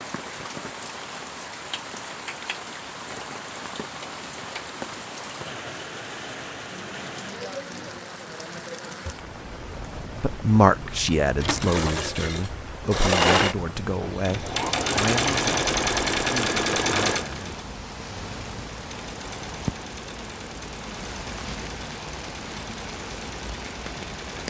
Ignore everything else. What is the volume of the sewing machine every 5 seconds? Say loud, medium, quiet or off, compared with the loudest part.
off, off, loud, loud, quiet.